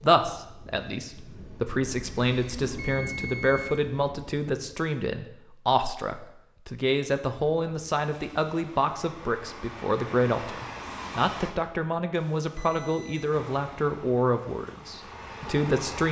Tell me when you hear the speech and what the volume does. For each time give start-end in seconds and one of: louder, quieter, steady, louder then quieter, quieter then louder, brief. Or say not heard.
0.0-16.0 steady.